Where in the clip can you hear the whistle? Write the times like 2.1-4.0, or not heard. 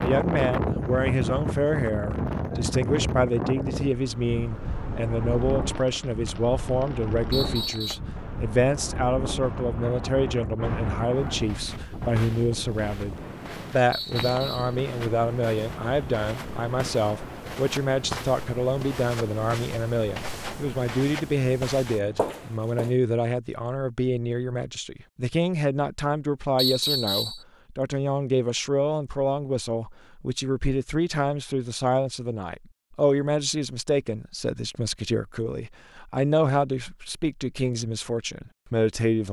7.3-8.0, 13.9-14.8, 26.6-27.4.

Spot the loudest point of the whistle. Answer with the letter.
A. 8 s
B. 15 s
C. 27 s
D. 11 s
C.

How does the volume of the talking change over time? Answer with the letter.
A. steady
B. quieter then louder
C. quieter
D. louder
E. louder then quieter
A.